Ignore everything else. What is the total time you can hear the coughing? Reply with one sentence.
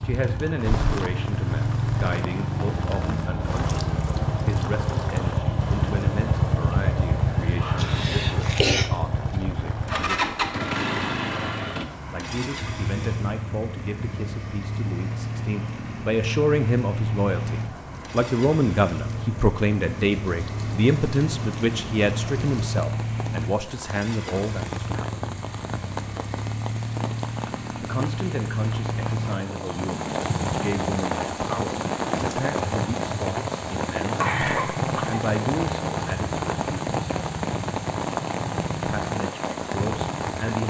The coughing can be heard for 2 seconds in total.